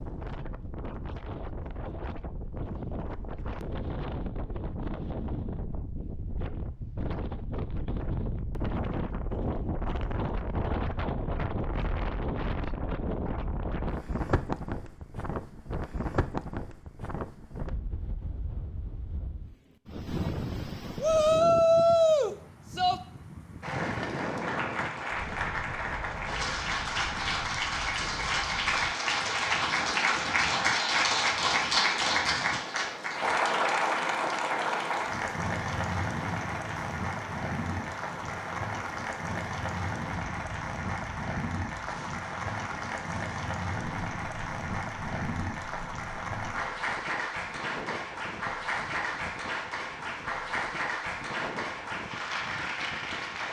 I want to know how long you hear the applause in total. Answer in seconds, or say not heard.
30 s.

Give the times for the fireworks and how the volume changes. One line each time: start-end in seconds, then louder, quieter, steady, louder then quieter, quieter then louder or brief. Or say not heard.
not heard.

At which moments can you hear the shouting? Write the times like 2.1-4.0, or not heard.
21.0-23.0.